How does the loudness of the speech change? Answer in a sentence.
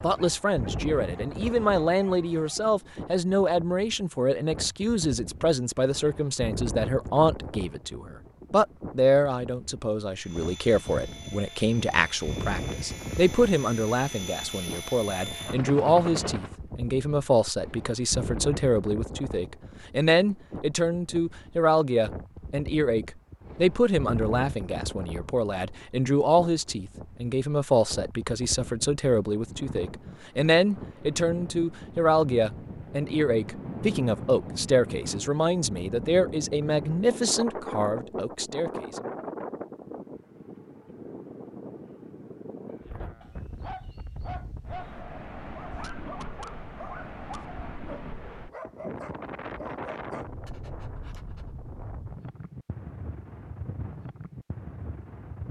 The loudness of the speech stays about the same.